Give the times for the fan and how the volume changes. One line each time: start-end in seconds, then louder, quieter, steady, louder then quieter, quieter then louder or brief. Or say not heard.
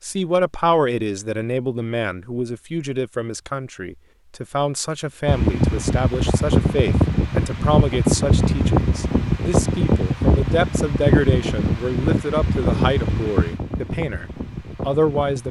5.2-15.4 quieter.